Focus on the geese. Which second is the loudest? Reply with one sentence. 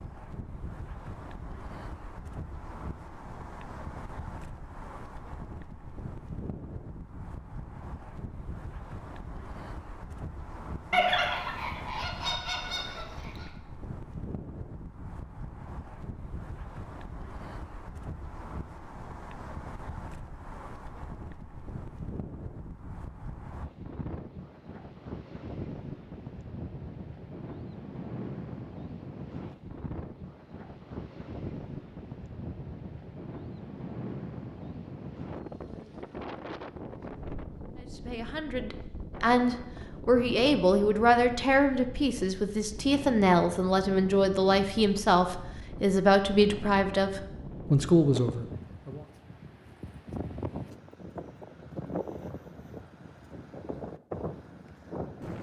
The loudest moment of the geese is at 11 seconds.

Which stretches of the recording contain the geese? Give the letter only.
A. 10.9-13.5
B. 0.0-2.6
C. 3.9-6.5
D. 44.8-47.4
A.